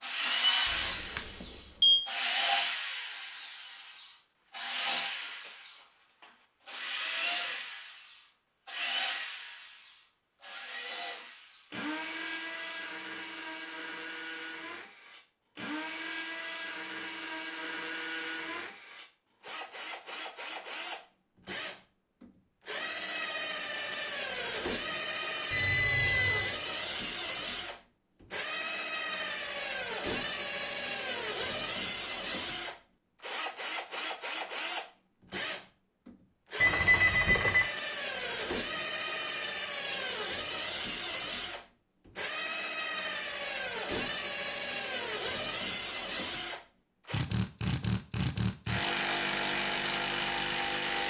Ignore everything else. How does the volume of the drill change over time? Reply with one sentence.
The loudness of the drill goes down, then up.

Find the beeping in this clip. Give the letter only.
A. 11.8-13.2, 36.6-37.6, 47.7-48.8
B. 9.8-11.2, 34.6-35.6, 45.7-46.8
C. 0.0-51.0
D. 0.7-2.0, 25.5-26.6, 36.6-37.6
D.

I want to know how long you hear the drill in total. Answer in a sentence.
You can hear the drill for 51 seconds altogether.